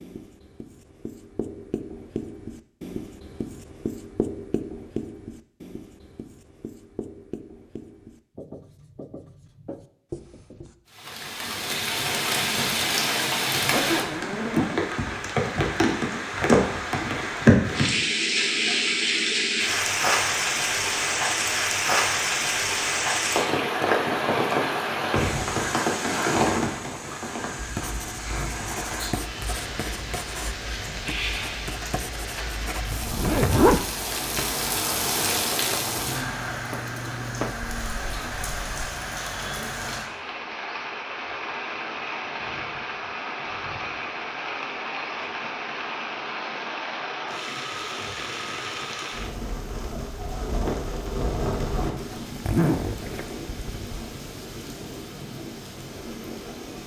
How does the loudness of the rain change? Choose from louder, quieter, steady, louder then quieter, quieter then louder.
quieter.